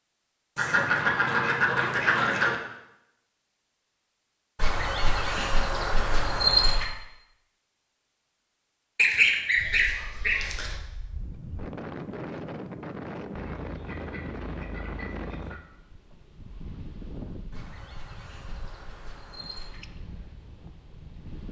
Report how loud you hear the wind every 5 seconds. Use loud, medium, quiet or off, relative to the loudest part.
off, off, loud, medium, medium.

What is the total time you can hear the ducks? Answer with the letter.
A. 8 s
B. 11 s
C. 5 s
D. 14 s
B.